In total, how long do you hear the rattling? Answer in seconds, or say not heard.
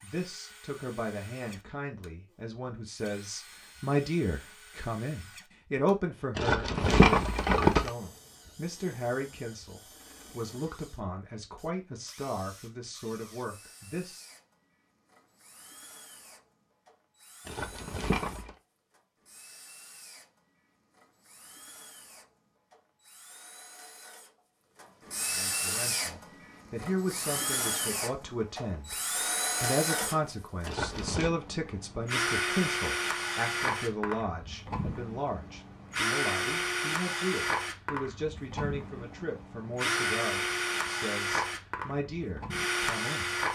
3 s.